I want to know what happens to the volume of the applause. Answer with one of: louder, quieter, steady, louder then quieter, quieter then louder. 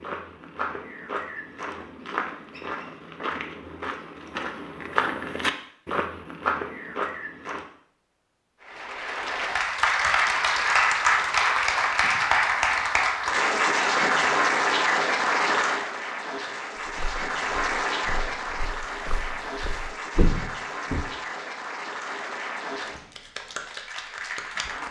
quieter.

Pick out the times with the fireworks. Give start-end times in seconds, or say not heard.
not heard.